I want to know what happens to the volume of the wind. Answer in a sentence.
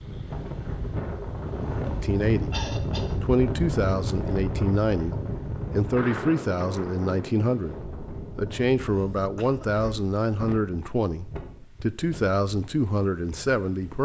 The loudness of the wind goes down.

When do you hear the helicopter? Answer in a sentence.
The helicopter can't be heard in this clip.